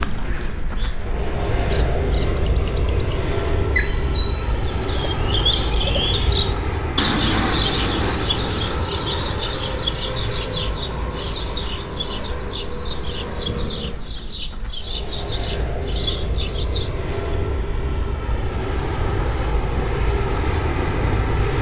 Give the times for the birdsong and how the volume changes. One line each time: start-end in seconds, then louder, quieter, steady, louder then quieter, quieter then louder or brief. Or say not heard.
0.0-17.4 louder then quieter.